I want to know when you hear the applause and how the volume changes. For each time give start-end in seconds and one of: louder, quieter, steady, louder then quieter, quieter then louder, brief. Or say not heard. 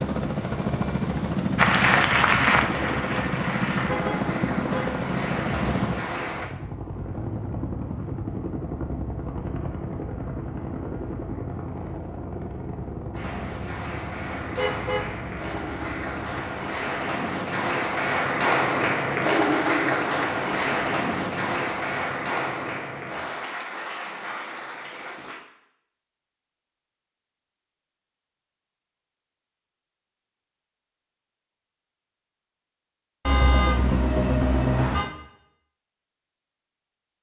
1.6-6.5 quieter
13.1-25.4 louder then quieter.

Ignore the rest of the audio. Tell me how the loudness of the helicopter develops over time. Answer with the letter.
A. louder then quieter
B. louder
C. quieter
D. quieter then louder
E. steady
C.